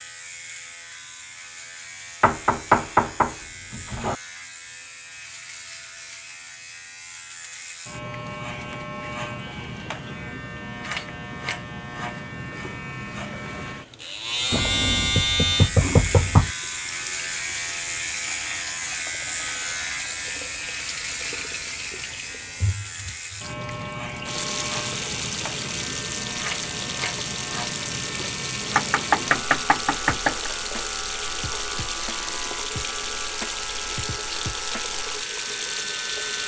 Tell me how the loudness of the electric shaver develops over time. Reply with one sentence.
The loudness of the electric shaver goes up, then down.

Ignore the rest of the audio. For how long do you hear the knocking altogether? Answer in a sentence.
You can hear the knocking for 6 seconds altogether.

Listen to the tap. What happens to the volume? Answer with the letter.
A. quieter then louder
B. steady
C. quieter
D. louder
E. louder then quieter
D.